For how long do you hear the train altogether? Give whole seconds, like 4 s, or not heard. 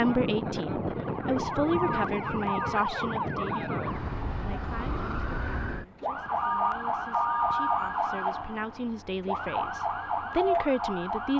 not heard.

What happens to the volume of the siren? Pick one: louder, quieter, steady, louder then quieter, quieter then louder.
steady.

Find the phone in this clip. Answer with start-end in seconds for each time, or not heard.
1.7-2.8, 6.4-7.8.